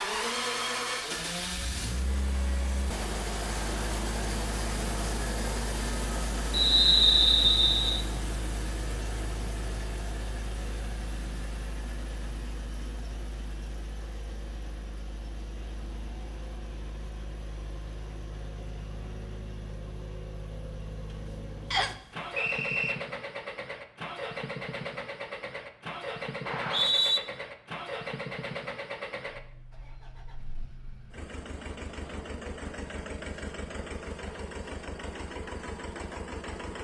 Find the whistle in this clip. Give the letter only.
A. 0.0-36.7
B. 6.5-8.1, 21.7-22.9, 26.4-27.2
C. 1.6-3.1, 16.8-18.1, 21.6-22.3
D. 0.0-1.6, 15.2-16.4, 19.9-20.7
B.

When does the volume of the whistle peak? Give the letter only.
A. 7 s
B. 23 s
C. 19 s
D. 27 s
A.